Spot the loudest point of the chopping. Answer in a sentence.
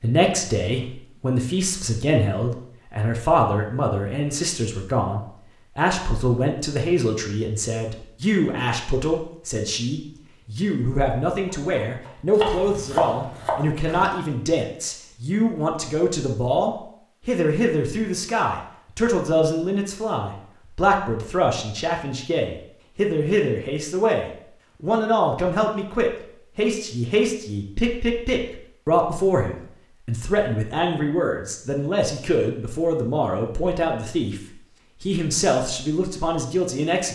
The loudest moment of the chopping is at 13 seconds.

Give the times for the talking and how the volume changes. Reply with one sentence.
You can hear the talking from 0.0 to 37.0 s, at a steady volume.